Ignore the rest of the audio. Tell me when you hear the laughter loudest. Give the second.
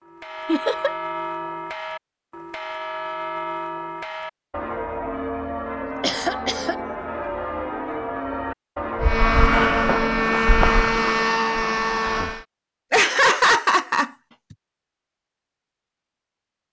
13 s.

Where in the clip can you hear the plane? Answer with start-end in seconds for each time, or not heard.
9.0-12.4.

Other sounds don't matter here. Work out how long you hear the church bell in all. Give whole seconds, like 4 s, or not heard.
10 s.